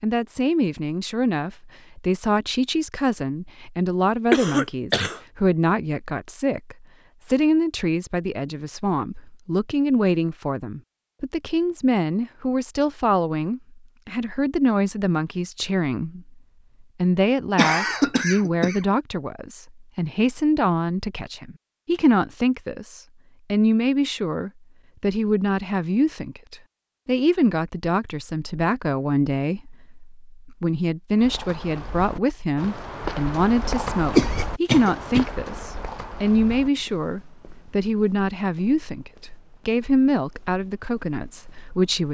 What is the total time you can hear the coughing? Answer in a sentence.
The coughing can be heard for 3 seconds in total.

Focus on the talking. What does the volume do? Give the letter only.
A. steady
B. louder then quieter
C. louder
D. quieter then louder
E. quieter
A.